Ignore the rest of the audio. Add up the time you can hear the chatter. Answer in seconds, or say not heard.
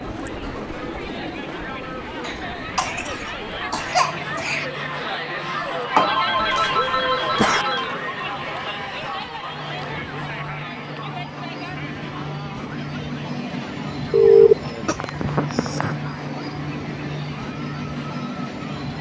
19 s.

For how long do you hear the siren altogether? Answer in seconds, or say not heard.
not heard.